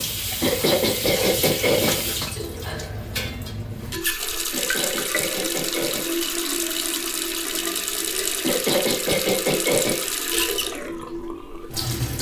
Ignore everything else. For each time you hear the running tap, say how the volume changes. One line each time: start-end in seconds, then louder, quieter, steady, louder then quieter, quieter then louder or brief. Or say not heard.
0.0-12.1 steady.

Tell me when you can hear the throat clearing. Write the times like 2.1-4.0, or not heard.
0.4-2.0, 4.5-6.2, 8.4-10.1.